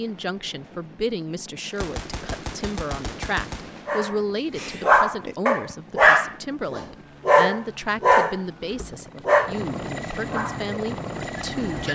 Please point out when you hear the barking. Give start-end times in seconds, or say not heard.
3.9-11.8.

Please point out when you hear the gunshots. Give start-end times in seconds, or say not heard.
1.6-4.0.